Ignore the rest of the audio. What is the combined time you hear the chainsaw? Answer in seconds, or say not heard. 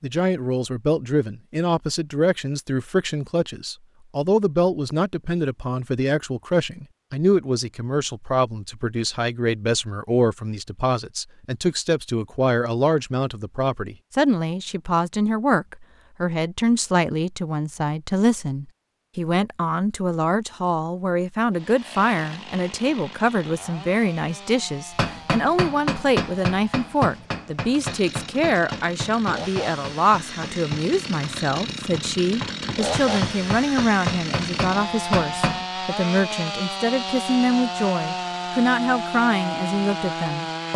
19 s.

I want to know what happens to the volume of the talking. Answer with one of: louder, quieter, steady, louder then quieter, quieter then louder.
steady.